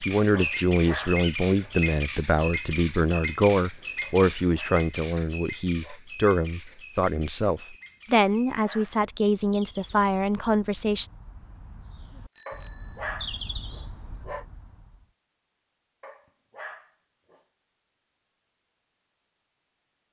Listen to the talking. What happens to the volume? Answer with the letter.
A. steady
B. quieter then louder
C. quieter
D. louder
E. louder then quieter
A.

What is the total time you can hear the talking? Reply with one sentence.
You can hear the talking for 11 seconds altogether.